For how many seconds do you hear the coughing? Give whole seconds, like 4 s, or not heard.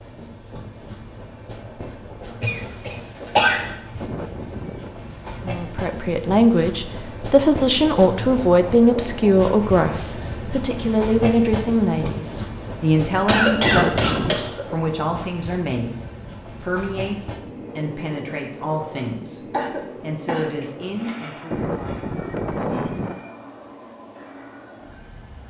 4 s.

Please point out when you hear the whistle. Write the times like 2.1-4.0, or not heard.
not heard.